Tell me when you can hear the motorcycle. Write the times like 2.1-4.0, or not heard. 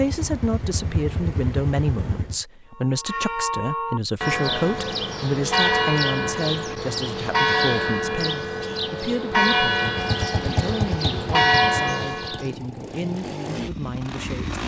0.0-2.5, 9.8-14.6.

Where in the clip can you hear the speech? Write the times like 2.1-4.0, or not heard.
0.0-14.6.